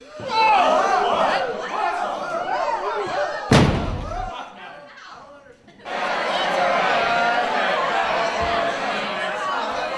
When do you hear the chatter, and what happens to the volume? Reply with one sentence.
The chatter can be heard from 0.0 to 9.9 s, getting quieter then louder.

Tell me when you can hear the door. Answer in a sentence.
The door can be heard from 3.5 to 4.3 s.